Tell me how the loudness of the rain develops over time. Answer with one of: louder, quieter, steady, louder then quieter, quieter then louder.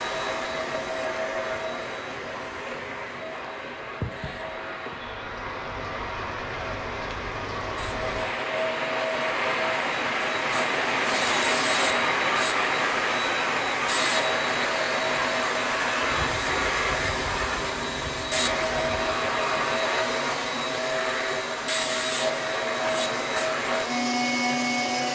louder then quieter.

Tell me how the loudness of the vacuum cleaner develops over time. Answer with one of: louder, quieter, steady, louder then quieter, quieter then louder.
louder.